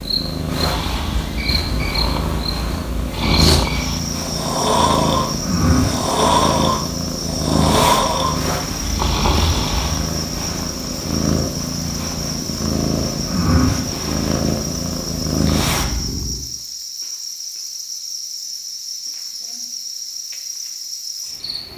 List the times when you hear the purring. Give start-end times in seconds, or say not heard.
0.0-16.4.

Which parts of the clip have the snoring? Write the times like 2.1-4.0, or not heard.
0.6-10.1.